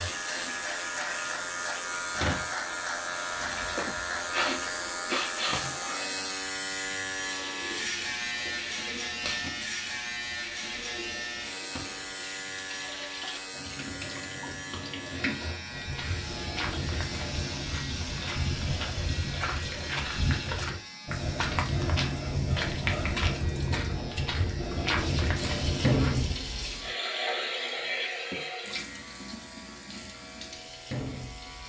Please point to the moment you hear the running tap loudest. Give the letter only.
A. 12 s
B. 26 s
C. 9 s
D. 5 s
B.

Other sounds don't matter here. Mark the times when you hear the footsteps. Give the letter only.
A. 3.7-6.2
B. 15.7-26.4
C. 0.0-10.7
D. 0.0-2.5
B.